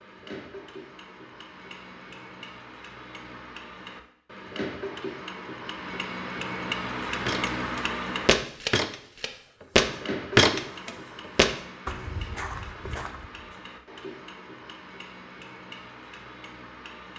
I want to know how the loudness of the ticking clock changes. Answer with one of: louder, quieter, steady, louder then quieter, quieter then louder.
louder then quieter.